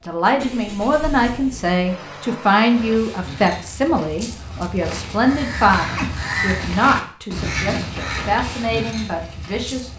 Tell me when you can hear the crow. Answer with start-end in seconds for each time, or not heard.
2.7-9.9.